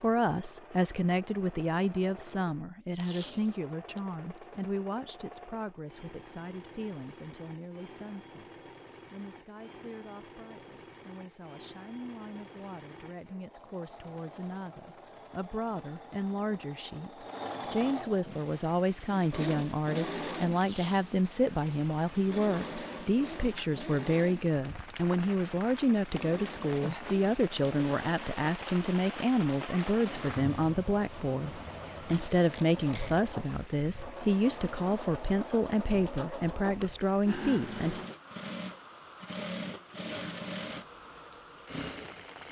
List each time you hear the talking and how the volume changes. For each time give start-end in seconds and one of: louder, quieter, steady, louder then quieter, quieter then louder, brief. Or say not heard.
0.0-38.0 quieter then louder.